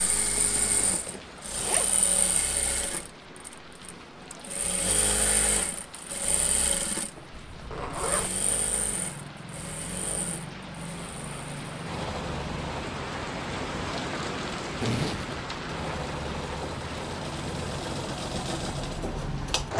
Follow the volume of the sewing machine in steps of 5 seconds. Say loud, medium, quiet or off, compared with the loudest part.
loud, loud, medium, loud.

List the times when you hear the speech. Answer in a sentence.
The speech can't be heard in this clip.